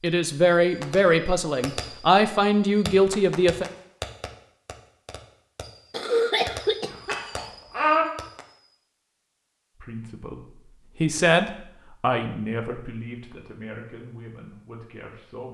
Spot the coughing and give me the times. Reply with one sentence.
The coughing can be heard from 5.9 to 7.2 s.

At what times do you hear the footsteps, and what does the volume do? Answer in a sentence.
The footsteps can't be heard in this clip.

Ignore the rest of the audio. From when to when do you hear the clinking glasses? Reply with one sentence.
The clinking glasses can be heard from 6.9 to 8.1 s.